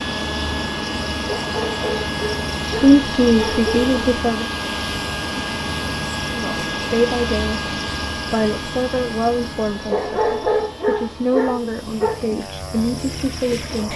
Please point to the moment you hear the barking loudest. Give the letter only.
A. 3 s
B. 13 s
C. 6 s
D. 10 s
D.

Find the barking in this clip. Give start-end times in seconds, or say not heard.
1.2-4.0, 9.8-12.2.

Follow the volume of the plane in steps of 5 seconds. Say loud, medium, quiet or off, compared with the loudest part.
loud, loud, medium.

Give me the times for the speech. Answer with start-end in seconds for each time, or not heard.
2.8-4.5, 6.3-13.9.